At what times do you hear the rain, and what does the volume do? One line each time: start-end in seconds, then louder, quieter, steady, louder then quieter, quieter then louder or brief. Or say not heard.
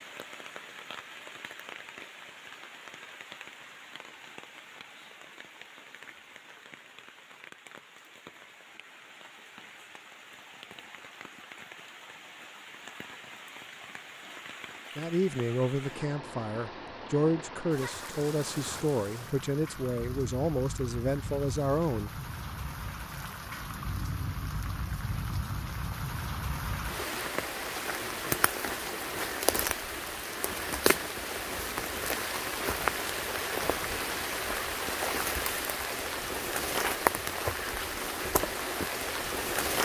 0.0-39.8 louder.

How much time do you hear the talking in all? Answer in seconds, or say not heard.
7 s.